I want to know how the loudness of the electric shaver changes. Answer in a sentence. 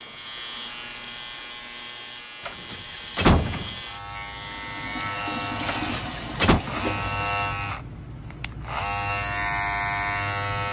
The loudness of the electric shaver goes up.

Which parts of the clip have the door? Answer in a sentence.
You can hear the door from 2.5 to 3.8 s and from 5.7 to 6.6 s.